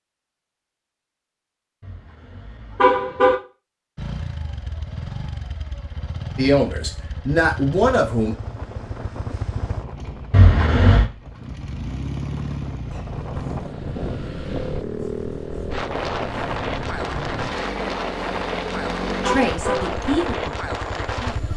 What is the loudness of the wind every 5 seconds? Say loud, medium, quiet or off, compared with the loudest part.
off, medium, medium, loud, loud.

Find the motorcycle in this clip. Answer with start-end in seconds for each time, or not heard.
4.0-21.5.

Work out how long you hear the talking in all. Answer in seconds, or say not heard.
4 s.